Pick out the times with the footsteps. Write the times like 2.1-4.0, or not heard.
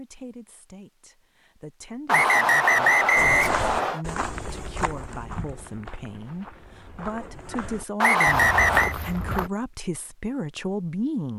3.1-9.5.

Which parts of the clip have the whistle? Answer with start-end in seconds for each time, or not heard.
2.0-4.0, 8.0-8.9.